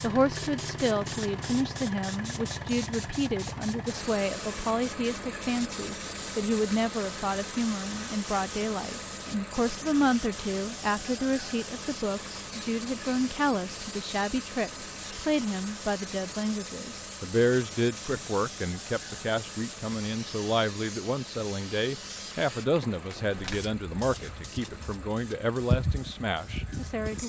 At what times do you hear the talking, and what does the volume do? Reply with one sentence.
The talking can be heard from 0.0 to 27.2 s, at a steady volume.